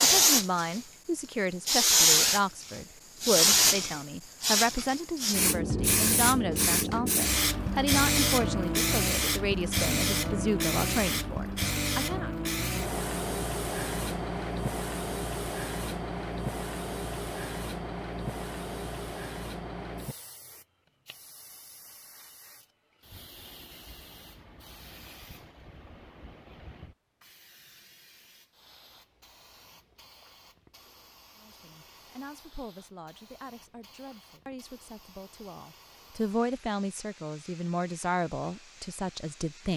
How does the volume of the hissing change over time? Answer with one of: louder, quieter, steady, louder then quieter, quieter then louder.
quieter.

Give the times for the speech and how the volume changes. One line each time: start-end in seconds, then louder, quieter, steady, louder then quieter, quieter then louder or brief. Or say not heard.
0.0-12.3 steady
31.4-39.7 louder.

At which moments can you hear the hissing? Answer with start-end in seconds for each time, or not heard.
0.0-39.7.